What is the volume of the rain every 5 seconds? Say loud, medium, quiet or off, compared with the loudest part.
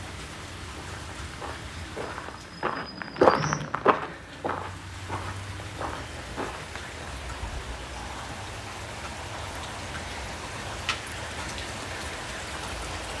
medium, loud, loud.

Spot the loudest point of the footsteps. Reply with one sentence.
The volume of the footsteps peaks at 3 seconds.